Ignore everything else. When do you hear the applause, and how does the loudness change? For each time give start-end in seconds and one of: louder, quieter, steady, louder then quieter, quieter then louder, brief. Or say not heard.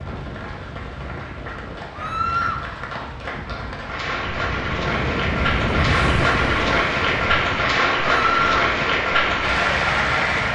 0.0-10.5 louder.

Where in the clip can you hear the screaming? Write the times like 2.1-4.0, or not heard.
1.9-2.6, 8.1-8.7.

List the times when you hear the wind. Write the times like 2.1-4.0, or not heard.
0.0-10.5.